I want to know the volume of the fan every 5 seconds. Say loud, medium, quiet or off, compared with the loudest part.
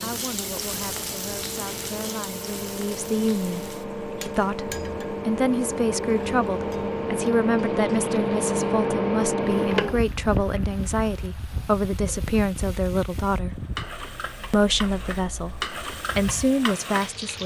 medium, loud, medium, quiet.